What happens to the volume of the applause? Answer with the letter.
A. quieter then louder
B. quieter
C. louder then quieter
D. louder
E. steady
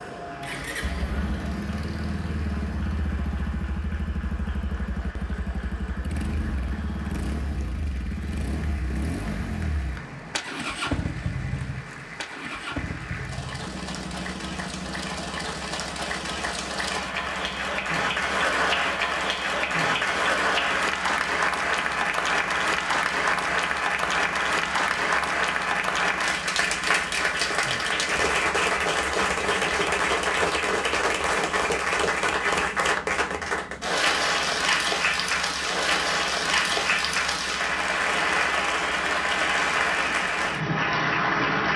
D.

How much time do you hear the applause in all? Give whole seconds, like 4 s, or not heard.
42 s.